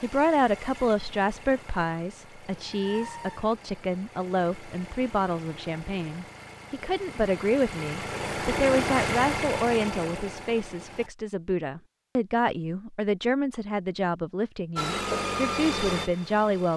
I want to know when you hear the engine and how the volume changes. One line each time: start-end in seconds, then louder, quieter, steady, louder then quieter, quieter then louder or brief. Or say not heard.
0.0-11.1 louder
14.8-16.7 brief.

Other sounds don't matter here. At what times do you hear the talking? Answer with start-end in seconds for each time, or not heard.
0.0-16.7.